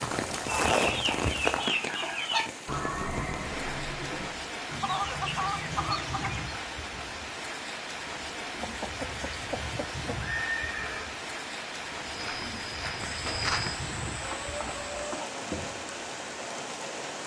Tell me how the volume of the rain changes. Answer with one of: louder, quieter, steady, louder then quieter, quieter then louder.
steady.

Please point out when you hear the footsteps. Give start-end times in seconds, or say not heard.
0.0-1.8, 12.0-13.8.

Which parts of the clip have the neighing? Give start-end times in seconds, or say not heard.
2.6-4.3, 10.4-11.1.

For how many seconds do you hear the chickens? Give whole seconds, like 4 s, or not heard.
8 s.